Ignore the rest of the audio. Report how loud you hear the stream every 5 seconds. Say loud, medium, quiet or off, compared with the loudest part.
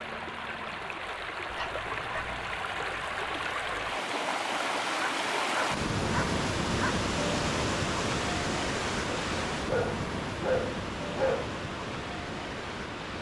loud, loud, medium.